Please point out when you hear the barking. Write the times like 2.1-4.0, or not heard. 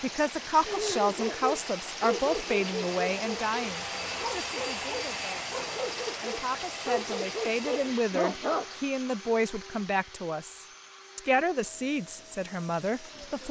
0.7-8.7.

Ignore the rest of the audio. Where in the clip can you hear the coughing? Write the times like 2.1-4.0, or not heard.
not heard.